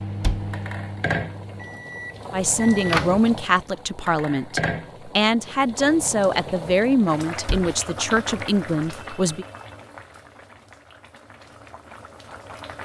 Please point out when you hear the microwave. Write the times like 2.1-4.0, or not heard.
0.0-3.3.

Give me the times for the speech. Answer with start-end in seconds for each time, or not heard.
2.3-9.4.